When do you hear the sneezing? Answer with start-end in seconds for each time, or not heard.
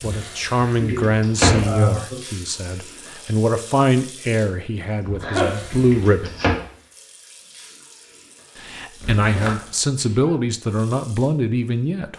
0.8-2.2, 5.2-5.8, 9.9-10.6.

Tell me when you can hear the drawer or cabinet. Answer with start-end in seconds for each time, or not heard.
0.0-1.8, 5.0-6.5, 9.0-9.6.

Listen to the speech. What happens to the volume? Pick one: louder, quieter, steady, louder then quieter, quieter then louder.
steady.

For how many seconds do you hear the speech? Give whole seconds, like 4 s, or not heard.
10 s.